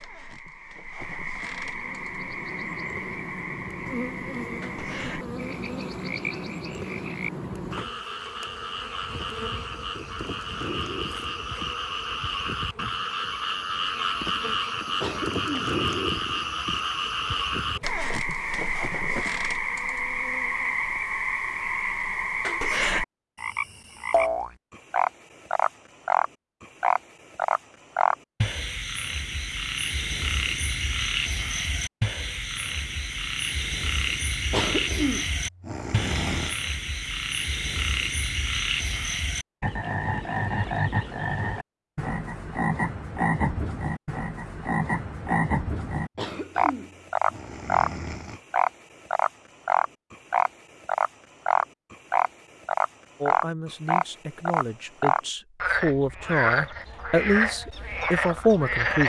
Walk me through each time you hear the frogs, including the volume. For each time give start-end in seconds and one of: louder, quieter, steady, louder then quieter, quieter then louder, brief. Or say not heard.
0.0-59.0 louder.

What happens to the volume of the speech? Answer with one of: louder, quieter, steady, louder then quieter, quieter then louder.
louder.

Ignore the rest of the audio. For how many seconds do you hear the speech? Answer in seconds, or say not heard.
6 s.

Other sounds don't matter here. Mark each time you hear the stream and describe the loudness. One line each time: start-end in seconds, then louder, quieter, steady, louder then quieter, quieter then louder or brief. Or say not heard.
not heard.